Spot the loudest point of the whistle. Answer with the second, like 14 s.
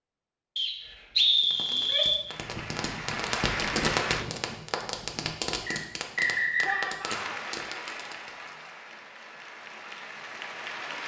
1 s.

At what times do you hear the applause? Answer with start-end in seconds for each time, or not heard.
2.2-4.2, 7.0-11.0.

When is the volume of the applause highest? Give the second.
4 s.